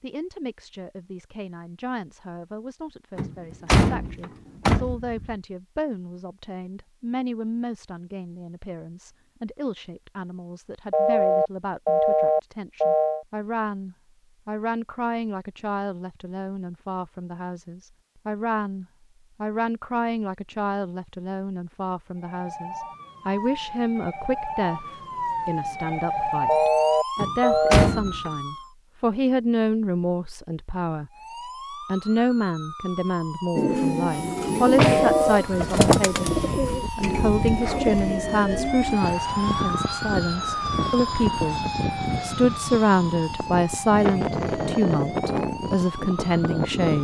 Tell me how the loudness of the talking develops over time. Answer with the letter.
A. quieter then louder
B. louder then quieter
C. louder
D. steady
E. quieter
C.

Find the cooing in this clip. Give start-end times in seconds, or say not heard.
33.5-39.0.